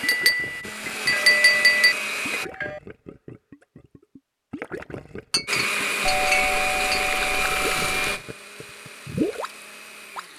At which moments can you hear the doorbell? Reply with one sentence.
You can hear the doorbell from 0.9 to 2.8 s and from 6.0 to 8.2 s.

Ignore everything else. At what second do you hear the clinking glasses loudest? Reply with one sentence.
The volume of the clinking glasses peaks at 1 second.